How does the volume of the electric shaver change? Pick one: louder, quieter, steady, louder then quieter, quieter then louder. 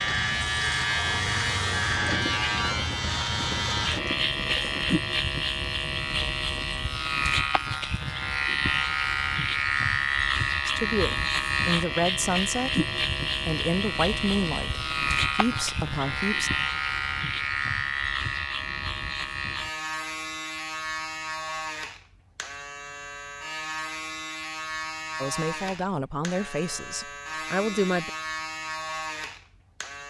quieter.